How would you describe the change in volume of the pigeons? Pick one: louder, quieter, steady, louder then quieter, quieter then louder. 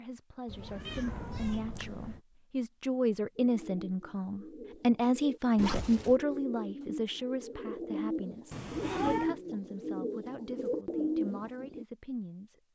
louder.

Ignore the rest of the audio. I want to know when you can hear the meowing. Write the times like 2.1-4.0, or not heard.
0.5-2.2, 5.5-6.2, 8.5-9.3.